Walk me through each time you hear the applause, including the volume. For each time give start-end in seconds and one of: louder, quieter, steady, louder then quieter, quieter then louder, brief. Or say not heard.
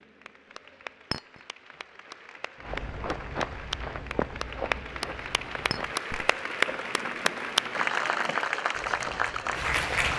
0.0-10.1 louder.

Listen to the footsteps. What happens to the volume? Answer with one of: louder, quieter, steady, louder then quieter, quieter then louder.
quieter.